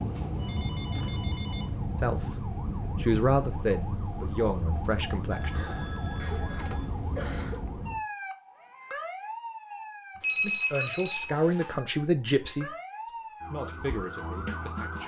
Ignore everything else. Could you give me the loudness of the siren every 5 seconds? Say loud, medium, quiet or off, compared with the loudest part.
loud, loud, medium.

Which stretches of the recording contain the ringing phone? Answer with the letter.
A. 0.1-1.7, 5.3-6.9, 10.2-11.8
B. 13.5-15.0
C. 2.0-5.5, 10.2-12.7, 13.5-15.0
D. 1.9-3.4
A.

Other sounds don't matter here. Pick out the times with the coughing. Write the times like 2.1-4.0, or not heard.
6.2-7.7.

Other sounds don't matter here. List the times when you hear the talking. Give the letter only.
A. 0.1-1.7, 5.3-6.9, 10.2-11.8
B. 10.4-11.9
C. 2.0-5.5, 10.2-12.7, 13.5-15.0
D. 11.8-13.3
C.